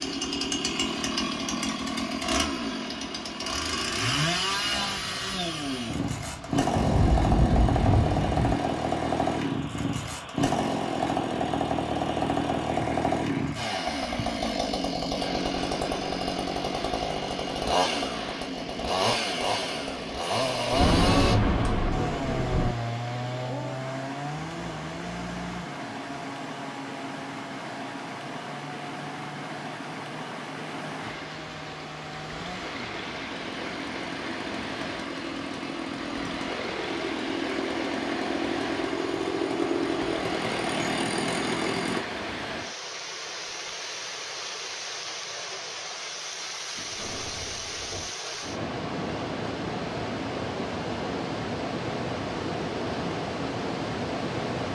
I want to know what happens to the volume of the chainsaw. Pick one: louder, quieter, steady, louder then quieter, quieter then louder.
quieter then louder.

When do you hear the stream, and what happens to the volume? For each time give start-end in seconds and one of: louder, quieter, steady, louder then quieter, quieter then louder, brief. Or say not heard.
0.0-54.7 louder.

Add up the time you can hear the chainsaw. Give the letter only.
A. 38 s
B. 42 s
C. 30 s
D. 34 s
B.